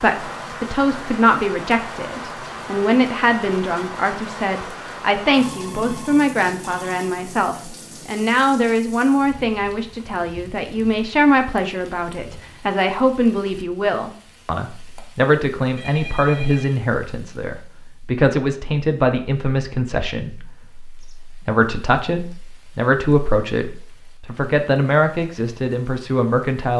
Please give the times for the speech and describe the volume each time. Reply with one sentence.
The speech can be heard from 0.0 to 26.7 s, at a steady volume.